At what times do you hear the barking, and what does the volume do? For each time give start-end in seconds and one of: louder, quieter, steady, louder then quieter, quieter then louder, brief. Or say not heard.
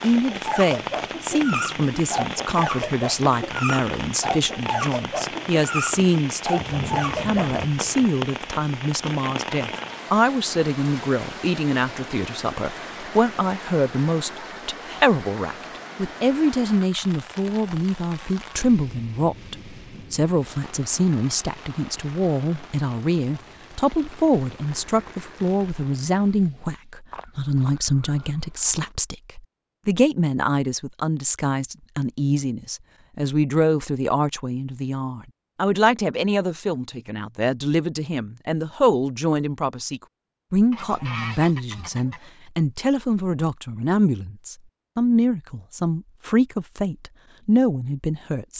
0.3-7.5 steady.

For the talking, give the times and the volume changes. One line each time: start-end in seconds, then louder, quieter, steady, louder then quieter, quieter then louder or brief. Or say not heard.
0.0-48.5 steady.